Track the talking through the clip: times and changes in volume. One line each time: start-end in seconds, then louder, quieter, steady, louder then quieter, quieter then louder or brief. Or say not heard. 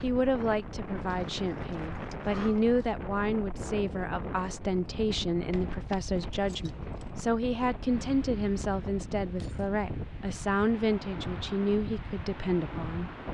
0.0-13.1 steady.